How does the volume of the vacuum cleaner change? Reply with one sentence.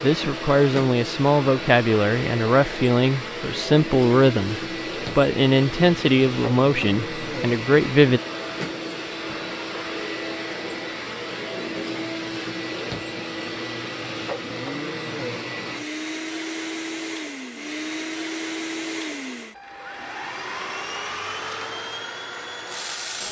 The loudness of the vacuum cleaner stays about the same.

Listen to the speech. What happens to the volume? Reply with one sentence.
The volume of the speech stays about the same.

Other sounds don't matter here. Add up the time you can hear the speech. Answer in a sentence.
The speech can be heard for 8 seconds in total.